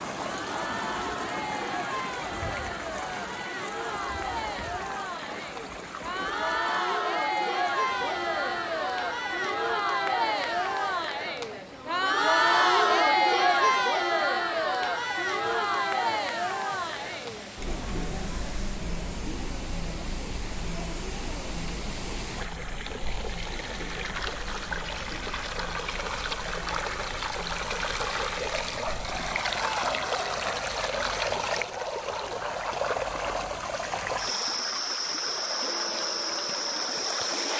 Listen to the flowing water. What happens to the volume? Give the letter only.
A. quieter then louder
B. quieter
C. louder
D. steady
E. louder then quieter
A.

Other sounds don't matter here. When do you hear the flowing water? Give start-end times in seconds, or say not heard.
0.0-37.5.